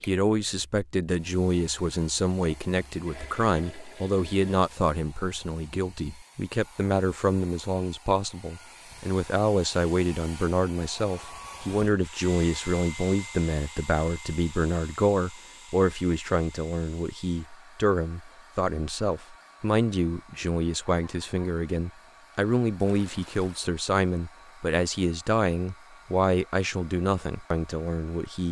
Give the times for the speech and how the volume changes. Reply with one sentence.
You can hear the speech from 0.0 to 28.4 s, at a steady volume.